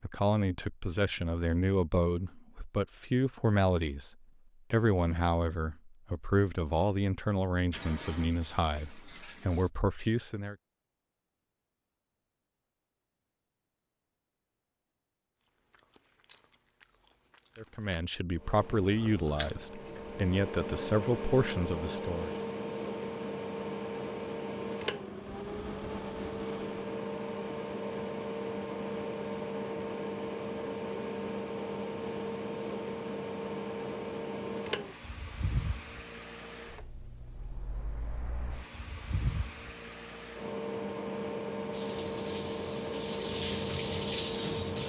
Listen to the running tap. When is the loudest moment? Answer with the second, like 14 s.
44 s.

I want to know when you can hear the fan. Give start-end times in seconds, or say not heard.
18.4-44.8.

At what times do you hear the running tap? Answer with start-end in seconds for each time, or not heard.
7.7-9.7, 41.7-44.8.